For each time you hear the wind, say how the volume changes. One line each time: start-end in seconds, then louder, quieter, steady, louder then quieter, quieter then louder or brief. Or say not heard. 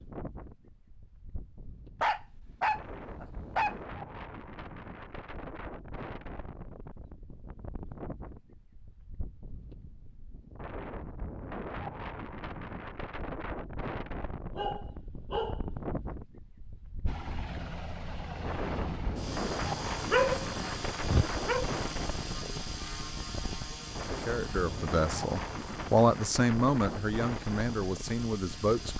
0.0-28.9 louder.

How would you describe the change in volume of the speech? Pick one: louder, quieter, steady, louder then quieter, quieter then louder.
louder then quieter.